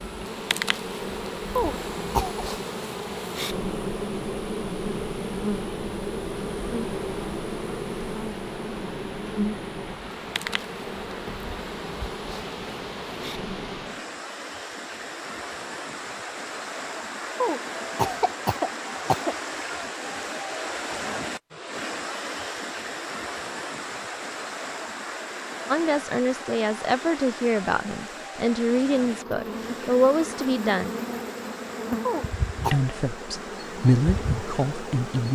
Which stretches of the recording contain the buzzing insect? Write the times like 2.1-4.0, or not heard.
0.0-14.0, 29.0-35.3.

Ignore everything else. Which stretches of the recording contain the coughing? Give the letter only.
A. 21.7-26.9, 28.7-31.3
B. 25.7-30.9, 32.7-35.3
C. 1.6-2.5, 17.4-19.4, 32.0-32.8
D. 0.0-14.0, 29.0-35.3
C.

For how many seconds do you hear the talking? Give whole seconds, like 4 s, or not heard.
8 s.